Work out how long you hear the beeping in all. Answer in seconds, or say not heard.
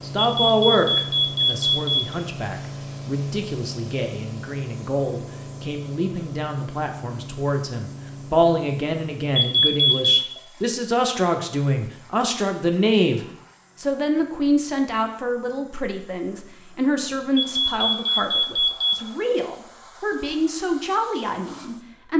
4 s.